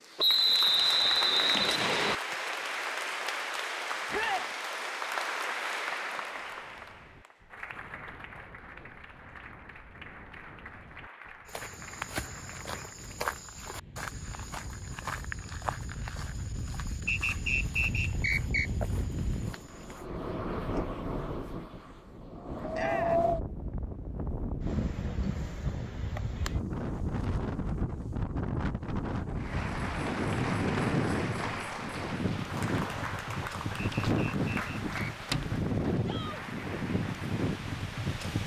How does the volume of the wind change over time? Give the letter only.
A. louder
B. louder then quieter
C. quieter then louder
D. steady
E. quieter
A.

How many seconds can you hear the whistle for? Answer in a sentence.
The whistle can be heard for 5 seconds in total.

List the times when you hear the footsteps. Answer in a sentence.
The footsteps can be heard from 11.4 to 20.1 s.